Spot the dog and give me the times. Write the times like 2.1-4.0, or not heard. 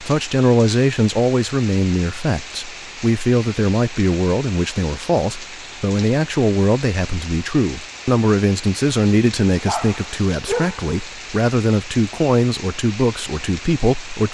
9.5-10.9.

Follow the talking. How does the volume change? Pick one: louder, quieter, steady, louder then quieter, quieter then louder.
steady.